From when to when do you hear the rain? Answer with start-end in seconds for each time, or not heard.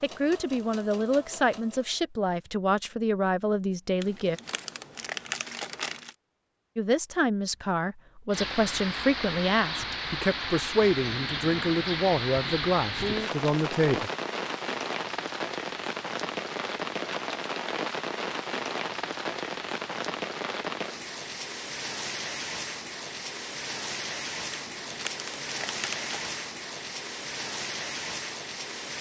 8.3-28.9.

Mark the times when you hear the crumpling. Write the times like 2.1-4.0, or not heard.
4.0-6.2, 24.6-26.4.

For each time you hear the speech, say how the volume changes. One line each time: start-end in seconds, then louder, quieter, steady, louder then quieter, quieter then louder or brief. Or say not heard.
0.0-4.4 steady
6.8-14.1 steady.